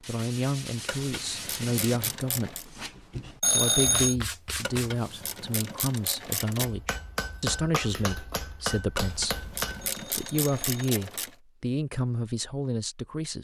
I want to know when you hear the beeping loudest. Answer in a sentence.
The loudest moment of the beeping is at 4 seconds.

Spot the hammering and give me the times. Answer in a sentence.
You can hear the hammering from 6.5 to 9.9 s.